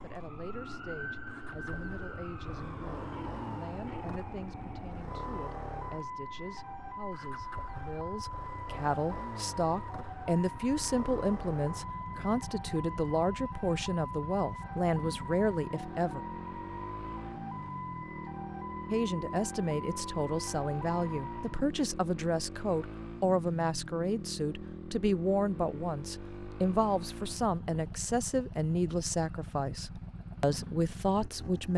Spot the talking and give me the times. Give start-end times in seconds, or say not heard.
0.0-16.2, 18.9-31.7.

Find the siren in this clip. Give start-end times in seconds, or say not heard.
0.0-21.7.